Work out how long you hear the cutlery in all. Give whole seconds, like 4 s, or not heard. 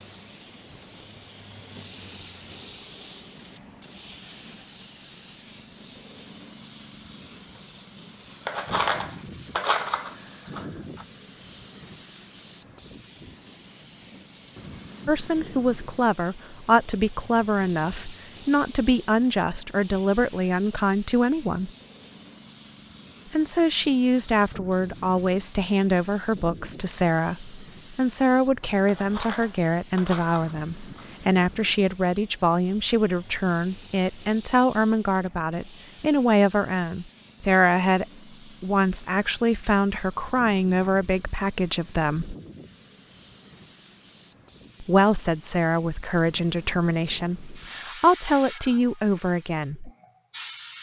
5 s.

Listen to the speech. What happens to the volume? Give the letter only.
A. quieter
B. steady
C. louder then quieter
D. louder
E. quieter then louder
B.